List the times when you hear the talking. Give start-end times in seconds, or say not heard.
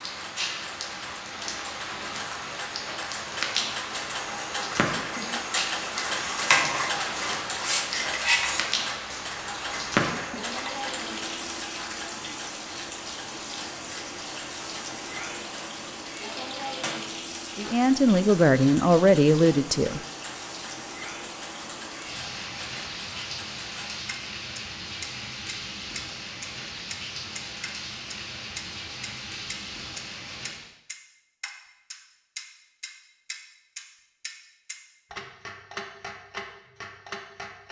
17.6-20.0.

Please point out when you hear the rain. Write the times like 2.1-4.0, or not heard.
0.0-30.7.